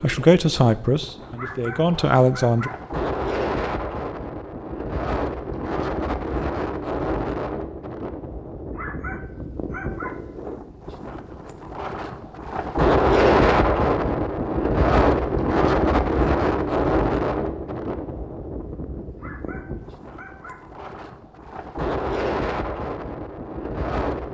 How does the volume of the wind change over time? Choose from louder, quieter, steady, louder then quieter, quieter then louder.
louder then quieter.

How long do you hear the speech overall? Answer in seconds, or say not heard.
3 s.